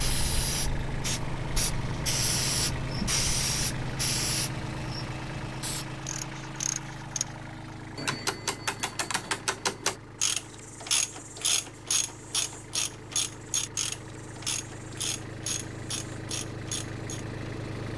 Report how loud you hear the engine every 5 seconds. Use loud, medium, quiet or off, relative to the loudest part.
loud, medium, medium, loud.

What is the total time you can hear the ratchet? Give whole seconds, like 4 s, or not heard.
11 s.